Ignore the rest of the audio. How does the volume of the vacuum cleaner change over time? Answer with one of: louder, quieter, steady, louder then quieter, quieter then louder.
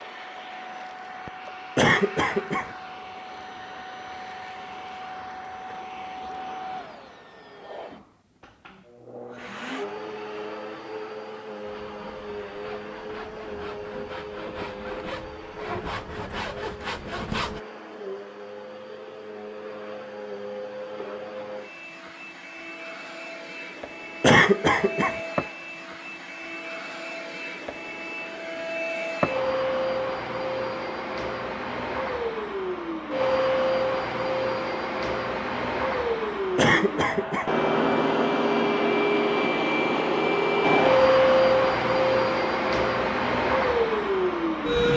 louder.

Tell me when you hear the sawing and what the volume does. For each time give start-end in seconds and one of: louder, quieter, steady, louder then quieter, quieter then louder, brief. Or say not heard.
11.7-17.6 louder.